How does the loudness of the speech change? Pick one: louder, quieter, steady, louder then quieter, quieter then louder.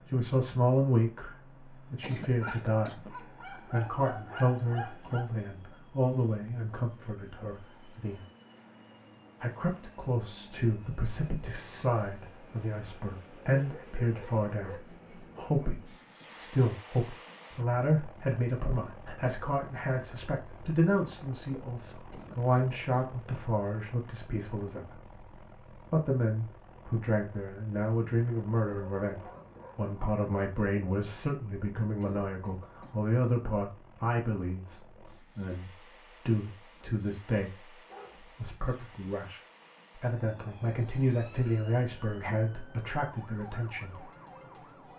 steady.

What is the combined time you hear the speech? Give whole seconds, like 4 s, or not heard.
42 s.